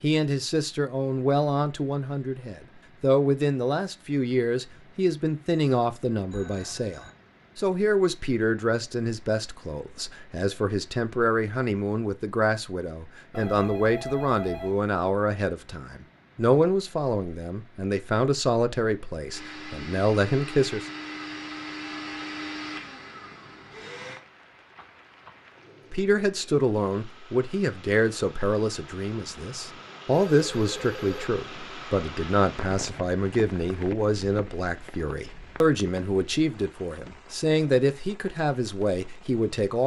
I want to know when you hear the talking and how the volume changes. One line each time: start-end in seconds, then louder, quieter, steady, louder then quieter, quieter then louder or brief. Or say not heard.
0.0-20.9 steady
25.9-39.8 steady.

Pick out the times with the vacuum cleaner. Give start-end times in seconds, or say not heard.
19.2-24.2.